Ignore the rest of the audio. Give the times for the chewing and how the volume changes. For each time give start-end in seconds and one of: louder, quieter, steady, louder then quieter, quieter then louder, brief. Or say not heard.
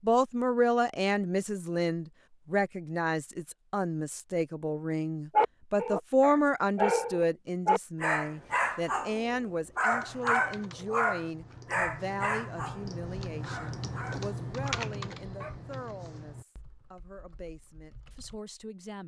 not heard.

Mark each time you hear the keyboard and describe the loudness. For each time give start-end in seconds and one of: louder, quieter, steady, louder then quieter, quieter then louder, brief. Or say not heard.
9.9-18.4 louder then quieter.